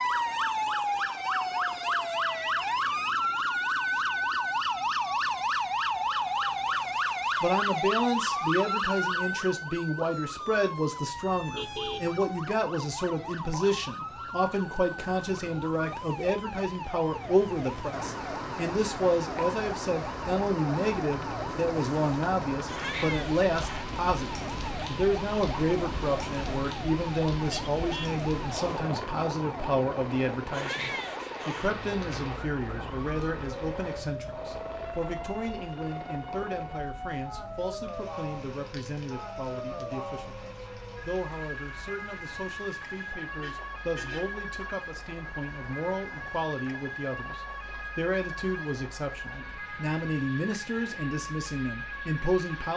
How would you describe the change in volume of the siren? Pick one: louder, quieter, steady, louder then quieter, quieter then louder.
quieter.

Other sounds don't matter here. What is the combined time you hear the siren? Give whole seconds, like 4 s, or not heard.
53 s.